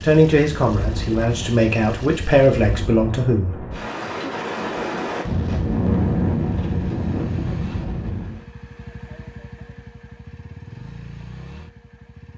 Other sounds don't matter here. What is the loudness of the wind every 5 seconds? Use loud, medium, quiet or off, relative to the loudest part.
medium, loud, off.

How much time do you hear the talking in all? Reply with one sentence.
The talking can be heard for 4 seconds in total.